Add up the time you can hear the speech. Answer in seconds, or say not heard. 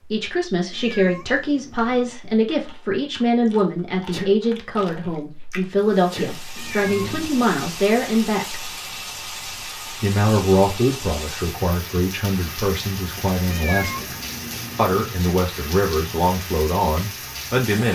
16 s.